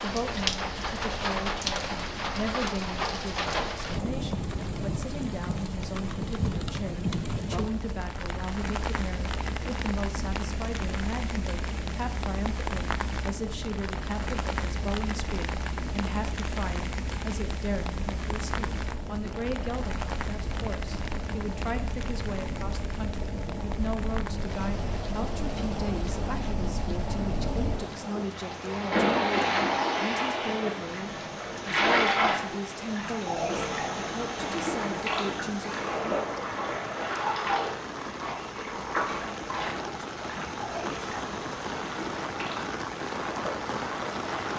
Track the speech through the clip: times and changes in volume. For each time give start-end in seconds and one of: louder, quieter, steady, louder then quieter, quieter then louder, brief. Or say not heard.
0.0-35.8 steady.